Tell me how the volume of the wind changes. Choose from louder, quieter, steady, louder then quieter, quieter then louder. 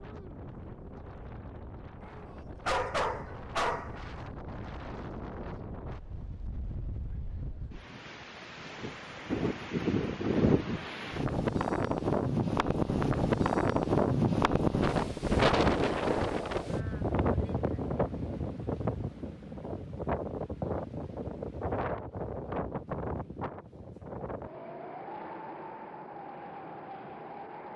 louder then quieter.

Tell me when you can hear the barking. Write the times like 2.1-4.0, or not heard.
2.0-4.0.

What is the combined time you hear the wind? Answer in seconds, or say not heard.
28 s.